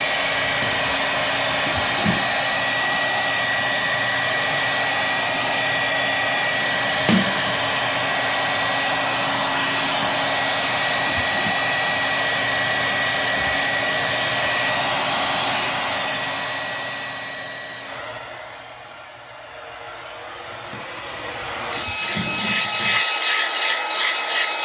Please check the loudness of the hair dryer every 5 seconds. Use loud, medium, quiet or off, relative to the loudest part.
loud, loud, loud, medium, loud.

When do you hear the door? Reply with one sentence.
The door can be heard from 7.0 to 7.6 s.